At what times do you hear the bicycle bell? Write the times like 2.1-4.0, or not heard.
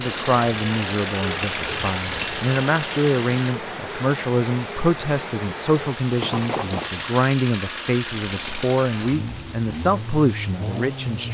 1.4-2.5, 6.2-7.0.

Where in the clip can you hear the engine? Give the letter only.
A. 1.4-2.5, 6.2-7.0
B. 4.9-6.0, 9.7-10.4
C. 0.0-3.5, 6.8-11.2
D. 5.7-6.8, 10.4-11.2
C.